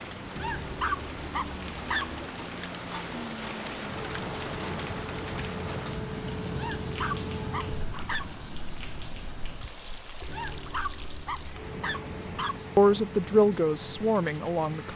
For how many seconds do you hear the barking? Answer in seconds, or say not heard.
6 s.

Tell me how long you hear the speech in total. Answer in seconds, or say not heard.
2 s.